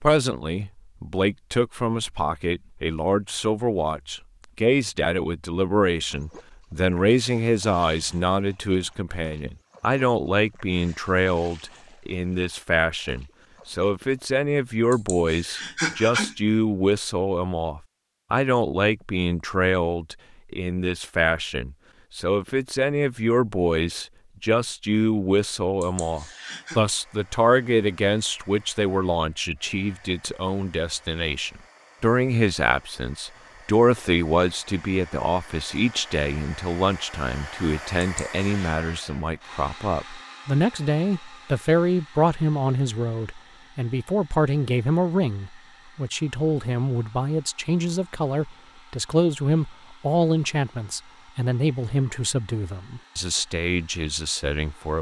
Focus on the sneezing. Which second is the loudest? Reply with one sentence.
The loudest moment of the sneezing is at 16 seconds.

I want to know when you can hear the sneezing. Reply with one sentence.
You can hear the sneezing from 14.9 to 16.4 s, from 25.8 to 26.8 s and from 38.0 to 38.8 s.